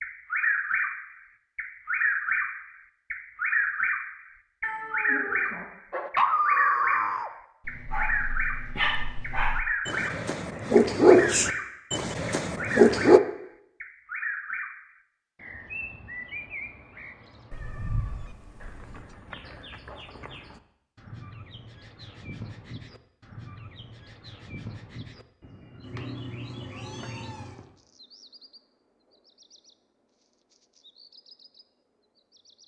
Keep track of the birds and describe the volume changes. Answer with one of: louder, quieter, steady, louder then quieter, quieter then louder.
quieter.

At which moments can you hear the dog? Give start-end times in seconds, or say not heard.
5.9-13.2.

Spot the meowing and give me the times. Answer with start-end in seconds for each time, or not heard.
4.6-5.7, 17.5-19.1, 25.8-27.6.